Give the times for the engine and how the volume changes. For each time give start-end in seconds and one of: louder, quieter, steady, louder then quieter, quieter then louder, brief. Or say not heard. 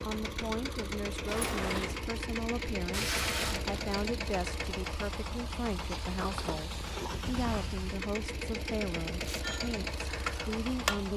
0.0-11.1 steady.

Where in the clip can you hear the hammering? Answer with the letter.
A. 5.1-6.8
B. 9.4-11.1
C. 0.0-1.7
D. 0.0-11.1
B.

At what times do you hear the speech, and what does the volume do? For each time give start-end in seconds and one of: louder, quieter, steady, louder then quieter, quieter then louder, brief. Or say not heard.
0.0-11.1 steady.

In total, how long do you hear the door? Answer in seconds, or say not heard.
2 s.